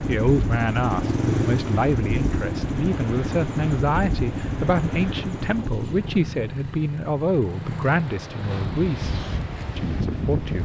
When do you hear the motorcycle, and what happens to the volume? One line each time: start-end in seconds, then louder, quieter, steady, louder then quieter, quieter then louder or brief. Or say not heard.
0.0-10.6 quieter.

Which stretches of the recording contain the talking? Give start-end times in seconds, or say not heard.
0.0-10.6.